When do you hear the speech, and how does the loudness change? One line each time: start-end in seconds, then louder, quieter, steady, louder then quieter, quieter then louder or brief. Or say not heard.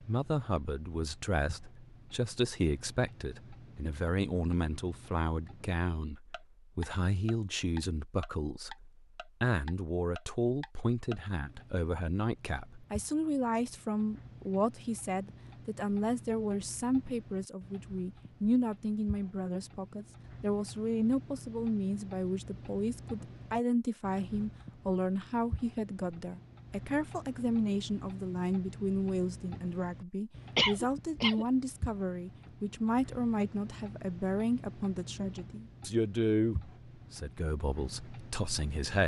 0.0-39.0 steady.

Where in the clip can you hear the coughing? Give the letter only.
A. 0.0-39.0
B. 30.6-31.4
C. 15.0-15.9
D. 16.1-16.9
B.